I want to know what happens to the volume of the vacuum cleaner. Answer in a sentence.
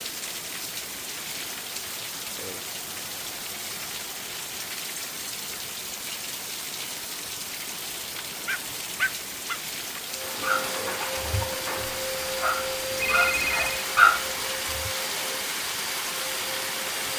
The volume of the vacuum cleaner stays about the same.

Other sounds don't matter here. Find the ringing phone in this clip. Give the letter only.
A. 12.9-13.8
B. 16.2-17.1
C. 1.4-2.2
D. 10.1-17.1
A.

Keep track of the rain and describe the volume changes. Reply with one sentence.
The volume of the rain stays about the same.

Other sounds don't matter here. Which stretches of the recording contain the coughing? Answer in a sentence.
The coughing can't be heard in this clip.